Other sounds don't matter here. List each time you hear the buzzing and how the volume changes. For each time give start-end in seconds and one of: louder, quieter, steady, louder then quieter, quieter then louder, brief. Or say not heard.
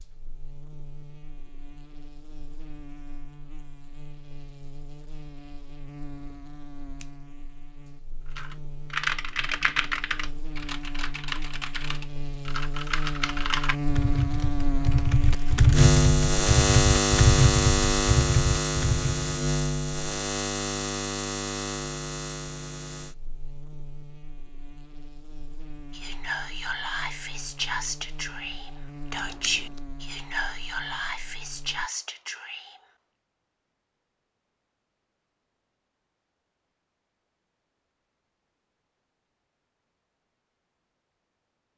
0.0-31.9 louder then quieter.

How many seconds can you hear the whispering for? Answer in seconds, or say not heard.
7 s.